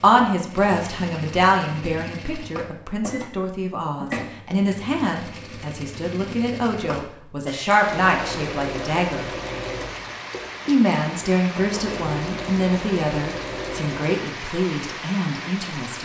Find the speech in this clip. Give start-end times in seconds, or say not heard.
0.0-9.3, 10.7-15.9.